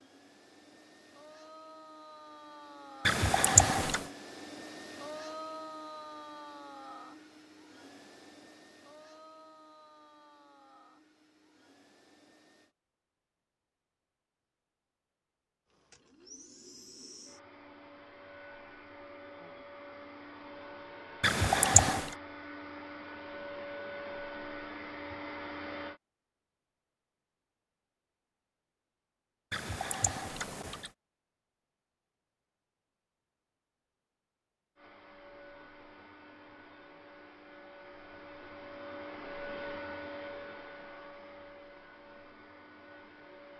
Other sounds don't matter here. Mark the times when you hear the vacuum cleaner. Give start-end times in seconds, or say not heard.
0.0-12.8, 15.7-26.0, 34.8-43.5.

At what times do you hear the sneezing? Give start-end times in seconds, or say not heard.
3.0-4.0, 21.2-22.1, 29.5-30.9.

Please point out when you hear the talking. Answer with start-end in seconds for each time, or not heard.
not heard.